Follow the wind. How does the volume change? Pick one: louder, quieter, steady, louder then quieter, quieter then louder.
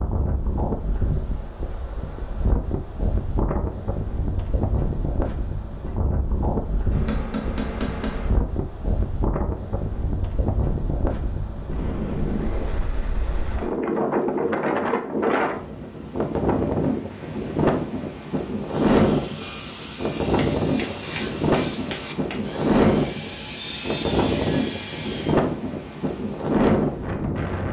louder.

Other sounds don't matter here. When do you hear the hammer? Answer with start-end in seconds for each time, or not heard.
6.9-8.4, 20.2-22.6.